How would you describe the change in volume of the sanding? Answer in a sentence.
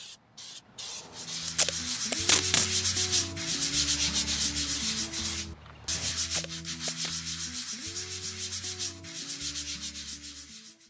The volume of the sanding goes down.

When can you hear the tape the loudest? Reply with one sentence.
The loudest moment of the tape is at 2 seconds.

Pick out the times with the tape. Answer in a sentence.
The tape can be heard from 1.4 to 2.8 s and from 6.2 to 7.2 s.